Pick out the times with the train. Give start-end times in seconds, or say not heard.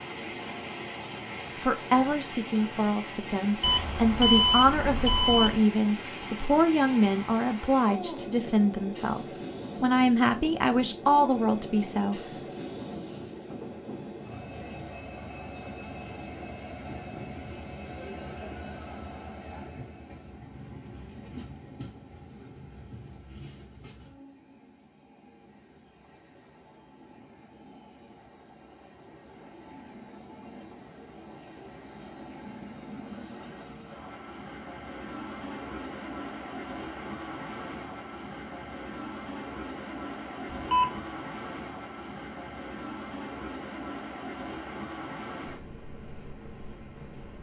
0.0-47.3.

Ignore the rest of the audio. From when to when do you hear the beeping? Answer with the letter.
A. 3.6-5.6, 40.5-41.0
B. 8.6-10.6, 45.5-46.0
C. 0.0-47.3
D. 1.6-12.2
A.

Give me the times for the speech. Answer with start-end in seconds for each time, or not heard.
1.6-12.2.